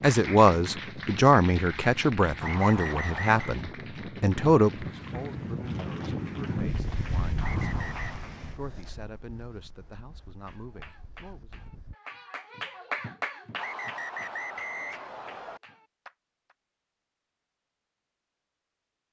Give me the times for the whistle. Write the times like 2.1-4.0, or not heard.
2.4-3.6, 7.4-8.2, 13.6-15.6.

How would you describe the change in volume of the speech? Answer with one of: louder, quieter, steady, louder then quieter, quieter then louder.
quieter.